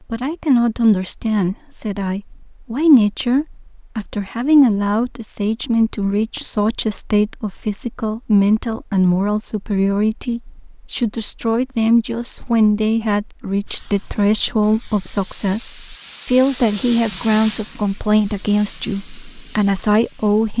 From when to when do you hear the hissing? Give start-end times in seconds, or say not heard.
13.6-20.5.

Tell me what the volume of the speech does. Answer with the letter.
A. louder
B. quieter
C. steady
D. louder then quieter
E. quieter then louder
C.